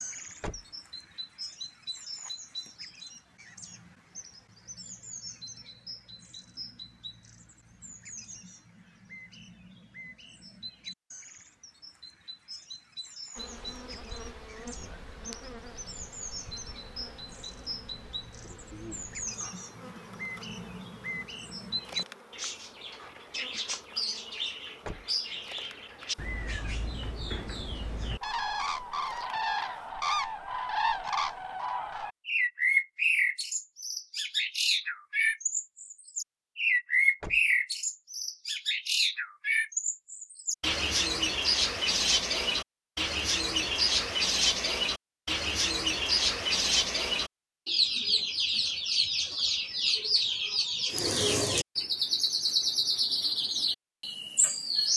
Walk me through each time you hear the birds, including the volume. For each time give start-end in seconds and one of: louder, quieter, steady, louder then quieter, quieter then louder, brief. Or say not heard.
0.0-54.9 louder.